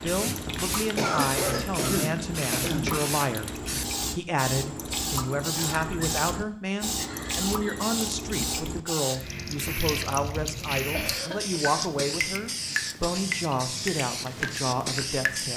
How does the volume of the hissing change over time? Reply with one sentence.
The loudness of the hissing stays about the same.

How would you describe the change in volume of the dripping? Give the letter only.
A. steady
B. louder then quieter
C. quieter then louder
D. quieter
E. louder
A.